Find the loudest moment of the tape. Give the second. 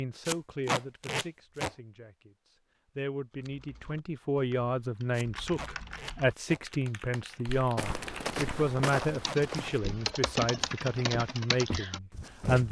1 s.